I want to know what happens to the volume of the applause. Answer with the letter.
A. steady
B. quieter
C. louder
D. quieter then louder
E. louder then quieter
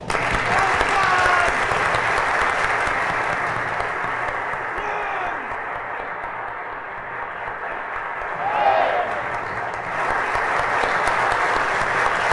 D.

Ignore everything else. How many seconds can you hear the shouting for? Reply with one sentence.
The shouting can be heard for 3 seconds in total.